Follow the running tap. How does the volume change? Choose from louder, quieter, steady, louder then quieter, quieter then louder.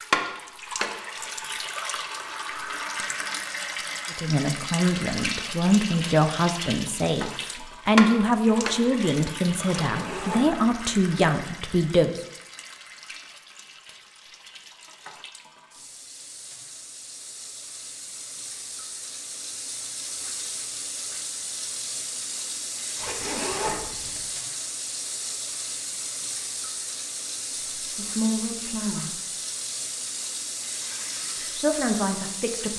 quieter then louder.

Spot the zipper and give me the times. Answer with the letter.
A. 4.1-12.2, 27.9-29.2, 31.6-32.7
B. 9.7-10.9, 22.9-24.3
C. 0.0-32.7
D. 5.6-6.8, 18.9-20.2
B.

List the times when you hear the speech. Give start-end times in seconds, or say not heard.
4.1-12.2, 27.9-29.2, 31.6-32.7.